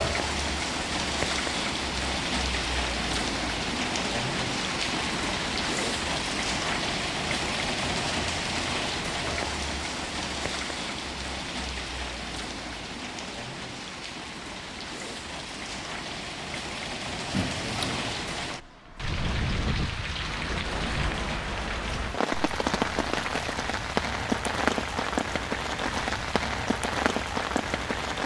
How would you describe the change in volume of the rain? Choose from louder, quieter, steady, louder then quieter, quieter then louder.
quieter then louder.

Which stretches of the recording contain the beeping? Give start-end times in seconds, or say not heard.
17.3-18.2.